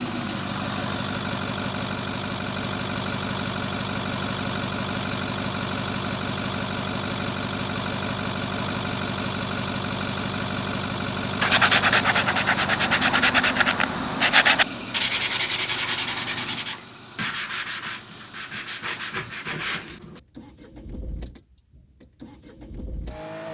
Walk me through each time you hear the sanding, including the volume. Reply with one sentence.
The sanding can be heard from 11.4 to 20.2 s, getting quieter.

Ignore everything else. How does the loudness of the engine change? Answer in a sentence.
The loudness of the engine goes down.